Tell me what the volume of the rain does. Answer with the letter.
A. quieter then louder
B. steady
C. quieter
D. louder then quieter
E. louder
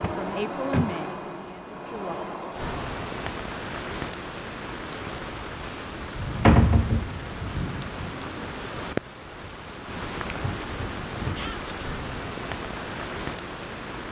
B.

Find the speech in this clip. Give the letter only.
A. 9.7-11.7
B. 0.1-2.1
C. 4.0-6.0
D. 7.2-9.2
B.